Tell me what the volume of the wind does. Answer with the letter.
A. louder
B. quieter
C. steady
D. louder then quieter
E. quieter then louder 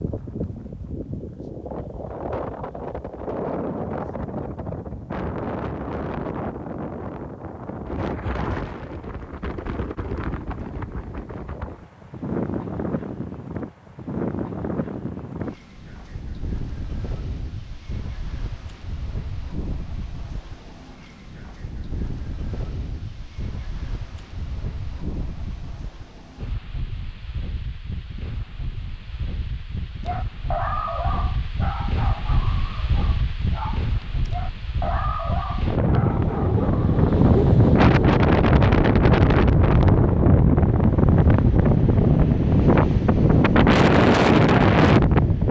E.